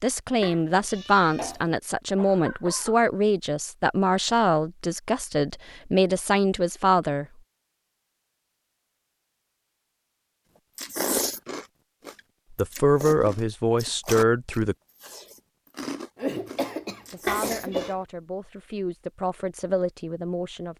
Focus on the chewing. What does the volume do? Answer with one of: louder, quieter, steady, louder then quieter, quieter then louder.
quieter.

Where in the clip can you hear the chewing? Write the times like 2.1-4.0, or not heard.
10.8-17.9.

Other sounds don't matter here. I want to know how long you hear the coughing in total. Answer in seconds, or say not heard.
3 s.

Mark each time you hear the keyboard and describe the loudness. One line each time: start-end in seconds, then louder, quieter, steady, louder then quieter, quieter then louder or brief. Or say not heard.
not heard.